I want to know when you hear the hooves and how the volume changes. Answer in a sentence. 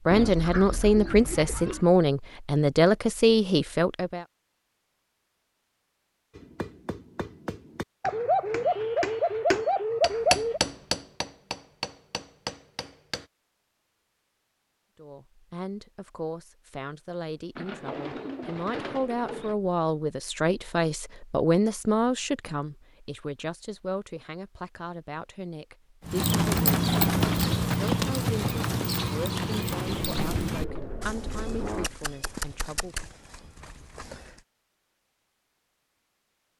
The hooves can be heard from 26.1 to 34.5 s, getting quieter.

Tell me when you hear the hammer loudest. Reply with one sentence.
The volume of the hammer peaks at 10 seconds.